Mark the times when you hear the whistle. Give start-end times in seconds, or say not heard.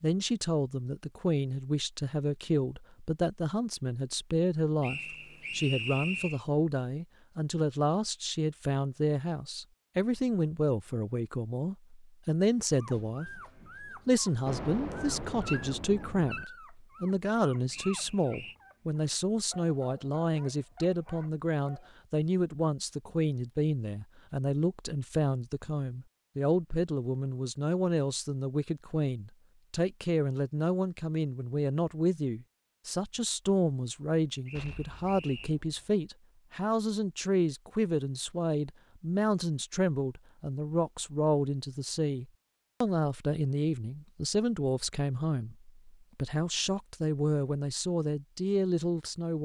4.8-6.4, 17.7-18.6, 34.5-35.5.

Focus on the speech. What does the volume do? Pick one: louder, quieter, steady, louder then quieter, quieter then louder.
steady.